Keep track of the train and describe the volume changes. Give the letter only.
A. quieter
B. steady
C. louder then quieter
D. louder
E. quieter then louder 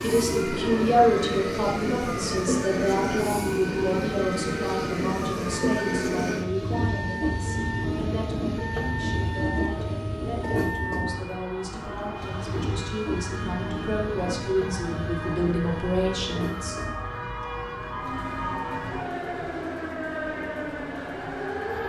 A.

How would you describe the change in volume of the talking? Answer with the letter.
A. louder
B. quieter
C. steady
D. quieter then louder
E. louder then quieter
D.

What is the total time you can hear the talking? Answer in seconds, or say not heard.
17 s.